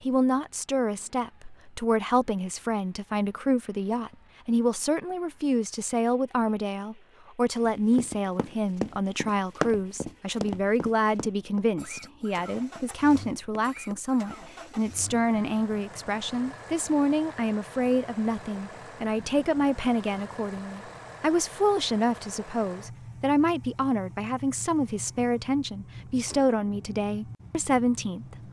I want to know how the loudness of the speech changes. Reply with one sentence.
The loudness of the speech stays about the same.